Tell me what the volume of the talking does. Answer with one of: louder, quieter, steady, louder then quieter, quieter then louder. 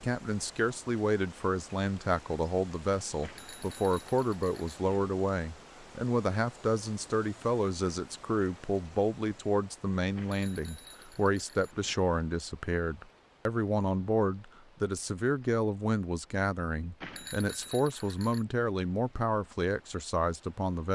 steady.